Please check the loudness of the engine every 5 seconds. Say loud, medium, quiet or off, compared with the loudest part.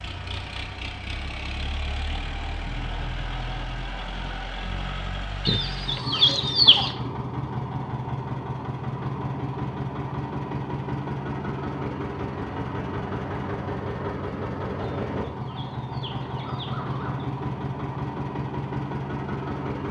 medium, loud, loud, loud.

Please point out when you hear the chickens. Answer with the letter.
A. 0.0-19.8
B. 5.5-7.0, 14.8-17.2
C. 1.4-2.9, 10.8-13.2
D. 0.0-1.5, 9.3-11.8
B.